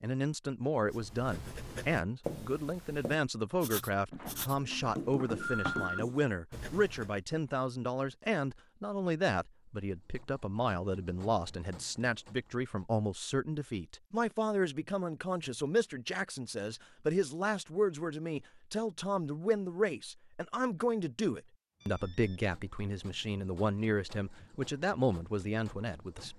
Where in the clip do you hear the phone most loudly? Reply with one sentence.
The volume of the phone peaks at 6 seconds.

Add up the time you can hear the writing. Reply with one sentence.
You can hear the writing for 6 seconds altogether.